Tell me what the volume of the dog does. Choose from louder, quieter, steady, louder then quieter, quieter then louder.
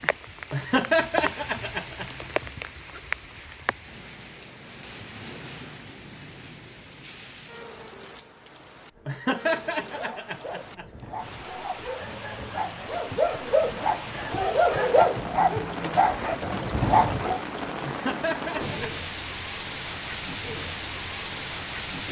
louder.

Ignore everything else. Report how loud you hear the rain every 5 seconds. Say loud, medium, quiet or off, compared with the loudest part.
loud, medium, medium, loud, loud.